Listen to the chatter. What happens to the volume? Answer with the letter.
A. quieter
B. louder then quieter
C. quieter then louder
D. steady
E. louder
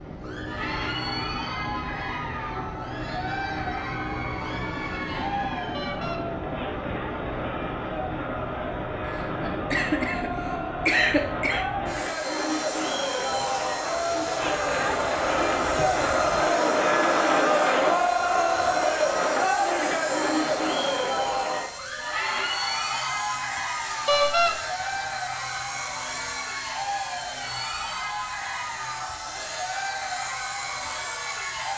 B.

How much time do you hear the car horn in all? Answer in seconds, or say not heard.
3 s.